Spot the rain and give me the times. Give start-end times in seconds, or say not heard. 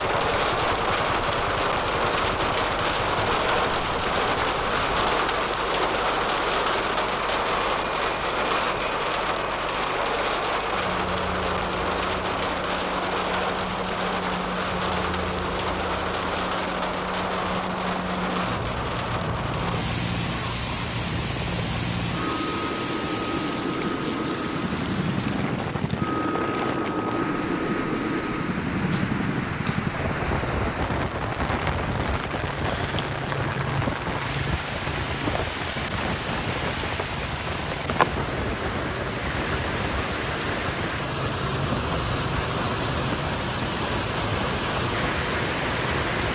0.0-46.2.